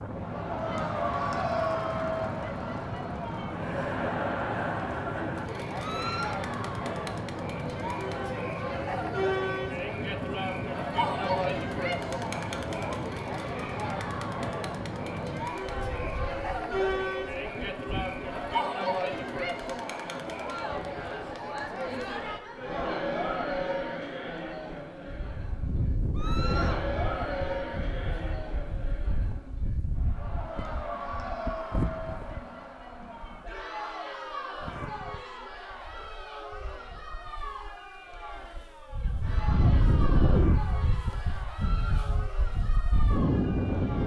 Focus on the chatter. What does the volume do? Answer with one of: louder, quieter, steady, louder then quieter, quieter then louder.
quieter.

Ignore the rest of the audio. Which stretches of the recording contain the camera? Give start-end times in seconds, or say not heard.
not heard.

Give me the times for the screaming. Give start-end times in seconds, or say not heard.
5.8-6.4, 26.1-26.9, 41.5-42.1.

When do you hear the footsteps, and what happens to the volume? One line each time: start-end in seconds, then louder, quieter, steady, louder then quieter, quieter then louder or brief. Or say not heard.
not heard.